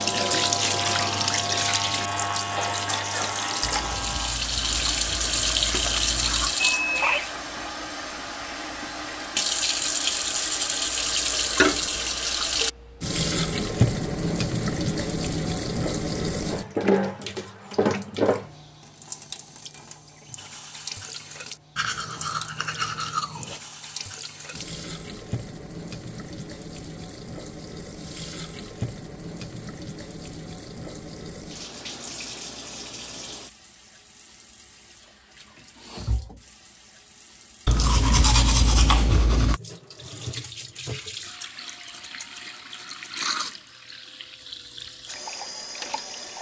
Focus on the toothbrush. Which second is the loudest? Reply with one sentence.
The volume of the toothbrush peaks at 38 seconds.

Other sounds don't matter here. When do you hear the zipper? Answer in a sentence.
The zipper can't be heard in this clip.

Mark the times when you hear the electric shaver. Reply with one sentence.
You can hear the electric shaver from 0.0 to 4.3 s.